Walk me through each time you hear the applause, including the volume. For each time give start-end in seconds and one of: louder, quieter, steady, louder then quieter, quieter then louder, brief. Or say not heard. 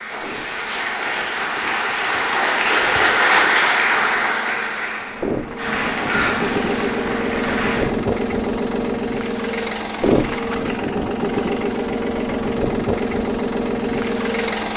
0.0-7.8 louder then quieter.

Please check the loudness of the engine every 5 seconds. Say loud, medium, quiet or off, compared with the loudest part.
quiet, loud, loud.